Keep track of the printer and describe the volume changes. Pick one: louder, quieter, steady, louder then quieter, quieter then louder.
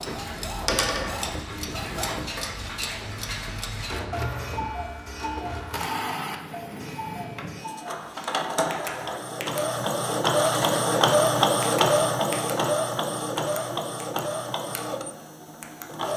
louder then quieter.